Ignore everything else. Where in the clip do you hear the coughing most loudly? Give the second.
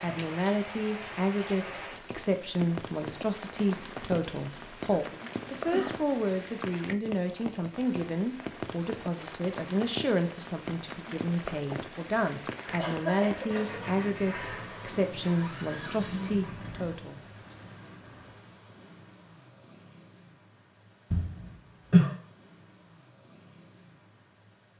22 s.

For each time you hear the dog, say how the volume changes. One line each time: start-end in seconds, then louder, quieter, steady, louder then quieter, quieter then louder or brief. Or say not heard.
not heard.